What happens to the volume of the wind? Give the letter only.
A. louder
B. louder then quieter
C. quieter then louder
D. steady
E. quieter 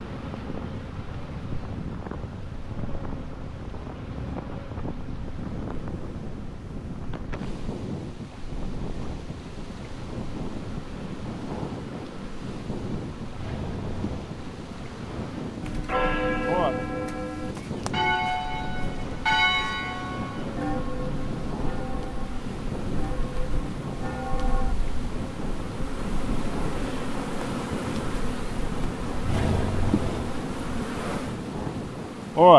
D.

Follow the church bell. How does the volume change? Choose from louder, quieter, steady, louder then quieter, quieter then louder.
quieter.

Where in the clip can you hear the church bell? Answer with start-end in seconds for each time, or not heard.
15.6-24.8.